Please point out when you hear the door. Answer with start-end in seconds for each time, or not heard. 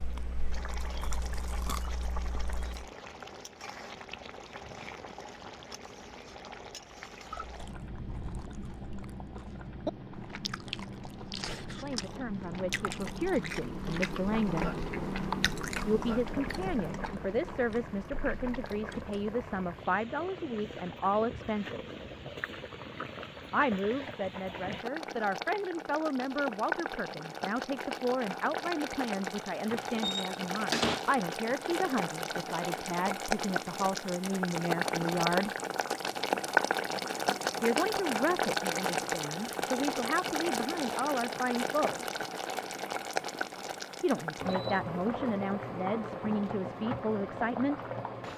29.7-31.1.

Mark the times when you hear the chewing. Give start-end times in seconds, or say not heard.
0.0-2.9, 7.2-19.4.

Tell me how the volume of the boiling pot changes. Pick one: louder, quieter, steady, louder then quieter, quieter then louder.
louder.